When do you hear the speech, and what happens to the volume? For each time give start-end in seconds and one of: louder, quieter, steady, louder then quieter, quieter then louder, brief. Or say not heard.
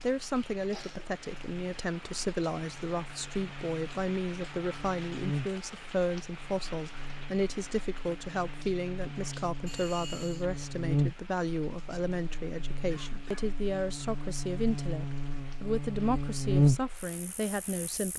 0.0-18.1 steady.